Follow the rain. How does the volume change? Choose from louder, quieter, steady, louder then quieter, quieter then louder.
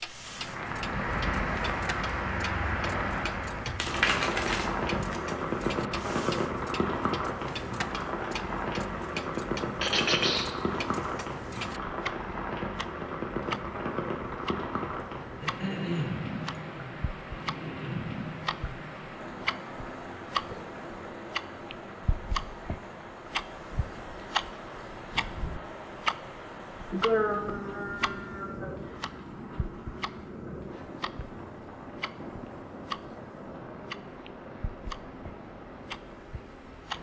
quieter.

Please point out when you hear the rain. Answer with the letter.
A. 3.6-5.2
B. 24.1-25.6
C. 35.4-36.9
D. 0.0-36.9
D.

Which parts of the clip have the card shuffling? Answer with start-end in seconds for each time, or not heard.
3.6-5.2.